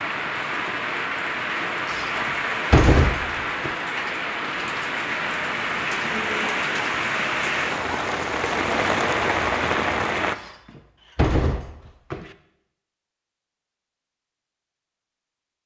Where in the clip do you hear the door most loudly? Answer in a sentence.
The loudest moment of the door is at 3 seconds.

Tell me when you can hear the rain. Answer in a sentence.
The rain can be heard from 0.0 to 10.3 s.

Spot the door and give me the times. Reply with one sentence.
You can hear the door from 1.9 to 3.7 s and from 10.3 to 12.3 s.